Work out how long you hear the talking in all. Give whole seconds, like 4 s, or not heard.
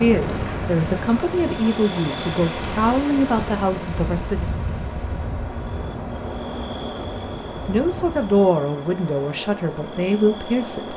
8 s.